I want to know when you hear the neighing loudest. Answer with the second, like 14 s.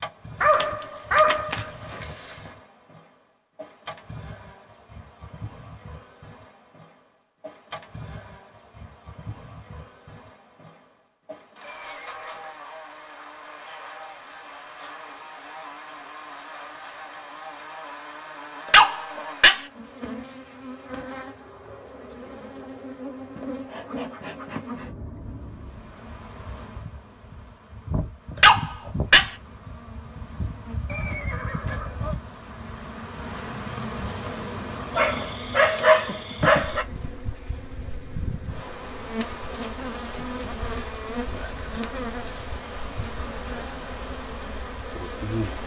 31 s.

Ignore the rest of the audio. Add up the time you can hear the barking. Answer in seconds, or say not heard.
6 s.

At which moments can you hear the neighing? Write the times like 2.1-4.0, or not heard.
11.6-12.6, 30.9-32.1.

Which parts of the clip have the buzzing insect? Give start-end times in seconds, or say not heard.
0.0-45.6.